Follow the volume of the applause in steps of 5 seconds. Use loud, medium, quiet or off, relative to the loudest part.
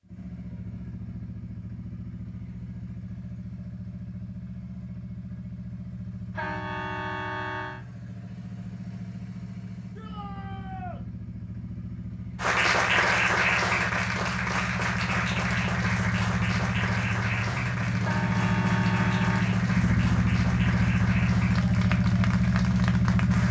off, off, loud, medium, medium.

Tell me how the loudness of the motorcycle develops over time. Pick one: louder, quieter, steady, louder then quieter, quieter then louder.
louder.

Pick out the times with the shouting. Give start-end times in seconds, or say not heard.
9.9-11.0.